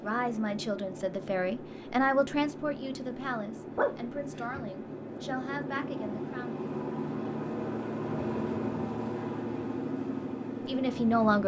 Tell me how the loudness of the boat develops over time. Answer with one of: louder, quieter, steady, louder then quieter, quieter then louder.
louder.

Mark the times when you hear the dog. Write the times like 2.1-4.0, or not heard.
3.8-4.7.